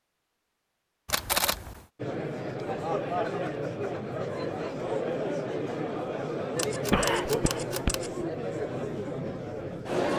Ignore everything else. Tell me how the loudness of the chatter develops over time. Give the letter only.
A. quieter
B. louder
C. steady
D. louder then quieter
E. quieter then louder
C.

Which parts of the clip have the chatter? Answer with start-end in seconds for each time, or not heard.
1.9-10.1.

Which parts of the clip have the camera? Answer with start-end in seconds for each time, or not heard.
1.1-1.9, 6.5-8.1.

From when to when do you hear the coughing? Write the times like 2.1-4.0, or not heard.
6.9-8.0.